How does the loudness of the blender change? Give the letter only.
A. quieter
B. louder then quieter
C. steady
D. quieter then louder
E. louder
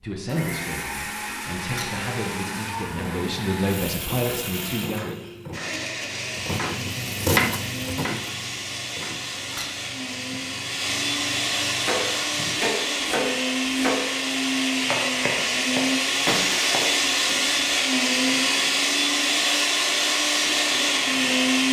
E.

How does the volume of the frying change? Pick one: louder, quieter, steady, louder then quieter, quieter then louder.
louder then quieter.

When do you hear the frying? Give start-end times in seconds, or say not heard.
2.9-12.7.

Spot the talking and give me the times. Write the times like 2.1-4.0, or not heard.
0.0-5.2.